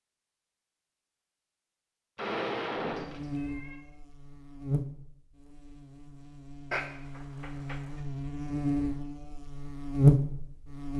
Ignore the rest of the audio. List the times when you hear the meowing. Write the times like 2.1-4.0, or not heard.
2.1-3.8, 6.7-8.0.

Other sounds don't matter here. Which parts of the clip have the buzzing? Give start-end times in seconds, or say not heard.
2.9-10.9.